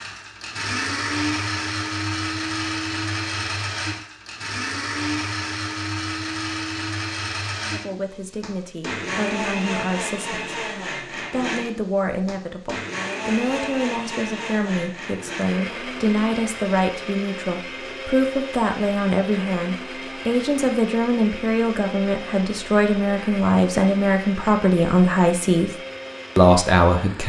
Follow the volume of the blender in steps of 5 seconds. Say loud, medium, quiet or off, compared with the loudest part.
loud, loud, loud, medium, medium, medium.